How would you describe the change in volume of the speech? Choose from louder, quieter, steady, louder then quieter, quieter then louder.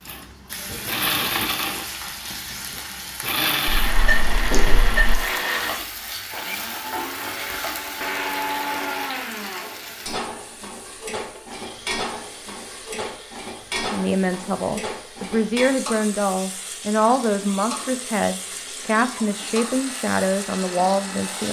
steady.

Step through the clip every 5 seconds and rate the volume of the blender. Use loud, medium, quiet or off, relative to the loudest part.
loud, loud, quiet, quiet, medium.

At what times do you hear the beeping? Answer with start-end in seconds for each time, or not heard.
3.6-5.2.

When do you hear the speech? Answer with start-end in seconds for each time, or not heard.
13.9-21.4.